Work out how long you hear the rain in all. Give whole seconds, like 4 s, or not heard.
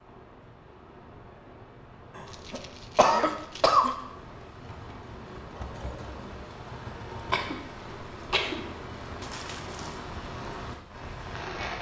12 s.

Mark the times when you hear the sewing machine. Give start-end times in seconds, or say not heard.
4.6-7.3.